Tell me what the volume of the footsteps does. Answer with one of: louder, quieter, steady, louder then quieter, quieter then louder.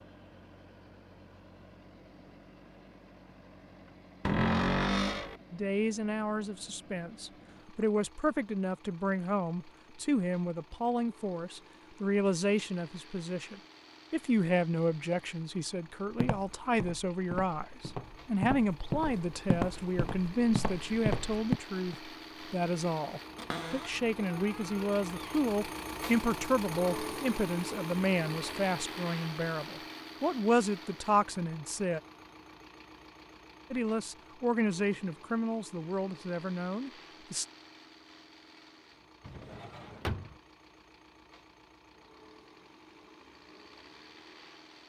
louder.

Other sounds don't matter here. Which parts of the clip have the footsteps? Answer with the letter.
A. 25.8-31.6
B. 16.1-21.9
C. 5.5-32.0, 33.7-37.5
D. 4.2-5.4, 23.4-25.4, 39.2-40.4
B.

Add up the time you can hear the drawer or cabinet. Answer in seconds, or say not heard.
4 s.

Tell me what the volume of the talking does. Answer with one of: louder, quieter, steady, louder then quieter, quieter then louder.
steady.